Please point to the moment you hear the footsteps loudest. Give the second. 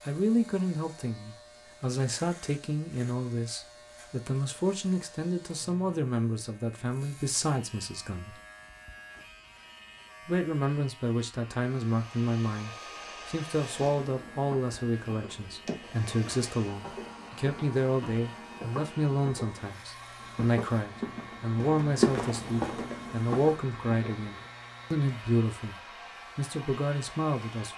22 s.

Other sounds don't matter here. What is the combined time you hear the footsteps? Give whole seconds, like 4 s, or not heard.
11 s.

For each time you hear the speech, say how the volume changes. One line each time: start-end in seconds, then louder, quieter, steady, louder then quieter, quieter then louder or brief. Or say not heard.
0.1-8.3 steady
10.2-27.7 steady.